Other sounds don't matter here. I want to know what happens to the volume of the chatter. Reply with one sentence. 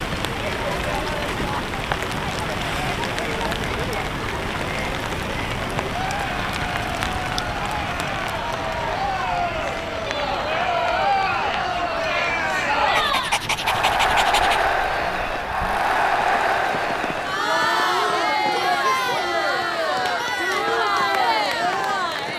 The volume of the chatter goes up.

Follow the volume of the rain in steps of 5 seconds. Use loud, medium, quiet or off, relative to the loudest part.
loud, loud, medium, medium, medium.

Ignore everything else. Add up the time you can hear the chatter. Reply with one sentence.
The chatter can be heard for 22 seconds in total.